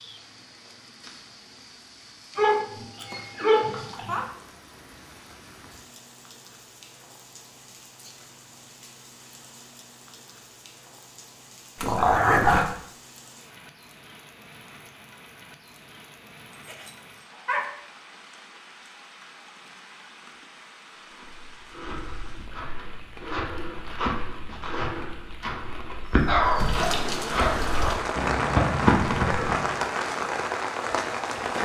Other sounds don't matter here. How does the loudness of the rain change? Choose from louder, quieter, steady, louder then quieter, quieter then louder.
louder.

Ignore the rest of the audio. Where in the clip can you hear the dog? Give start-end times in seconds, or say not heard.
2.4-4.2, 11.8-12.7, 16.6-17.7, 26.2-28.1.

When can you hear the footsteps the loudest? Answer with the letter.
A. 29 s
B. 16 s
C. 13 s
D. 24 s
A.